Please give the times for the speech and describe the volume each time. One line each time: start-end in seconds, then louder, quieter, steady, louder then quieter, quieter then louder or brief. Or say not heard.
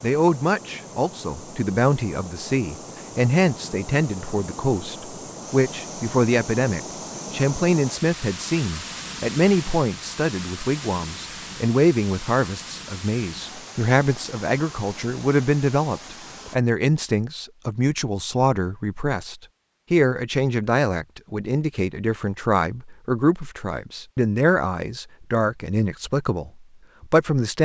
0.0-27.6 steady.